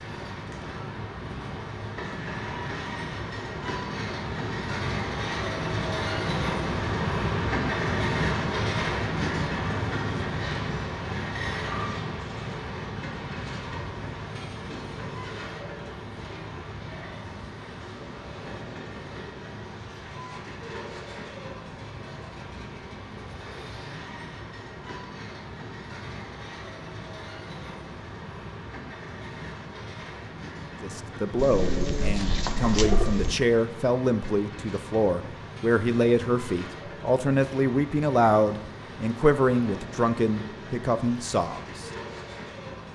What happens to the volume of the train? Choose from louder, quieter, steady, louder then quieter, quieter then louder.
quieter.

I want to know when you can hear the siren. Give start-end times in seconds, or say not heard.
not heard.